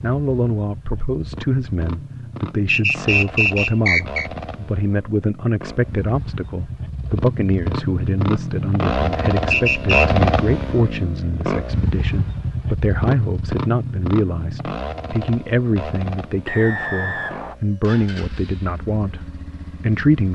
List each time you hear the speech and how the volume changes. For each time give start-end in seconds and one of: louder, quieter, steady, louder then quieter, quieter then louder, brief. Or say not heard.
0.0-20.3 steady.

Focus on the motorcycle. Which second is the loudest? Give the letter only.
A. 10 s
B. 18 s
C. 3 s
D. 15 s
A.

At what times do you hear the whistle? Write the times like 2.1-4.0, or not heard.
2.6-4.3, 9.5-10.1, 16.4-17.6.